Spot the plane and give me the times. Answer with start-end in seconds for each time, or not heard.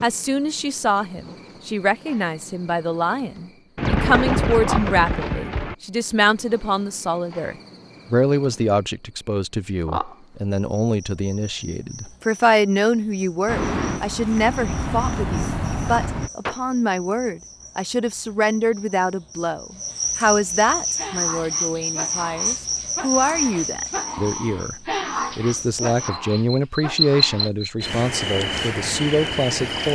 13.4-16.3.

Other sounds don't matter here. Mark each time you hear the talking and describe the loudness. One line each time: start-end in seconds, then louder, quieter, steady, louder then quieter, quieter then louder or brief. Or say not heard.
0.0-29.9 steady.